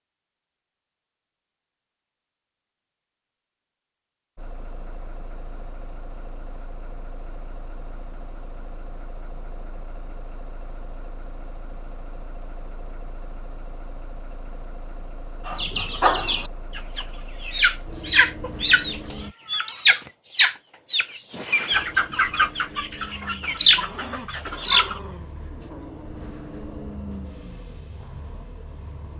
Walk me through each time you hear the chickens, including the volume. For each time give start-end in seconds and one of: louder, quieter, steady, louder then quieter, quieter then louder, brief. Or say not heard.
15.4-25.0 steady.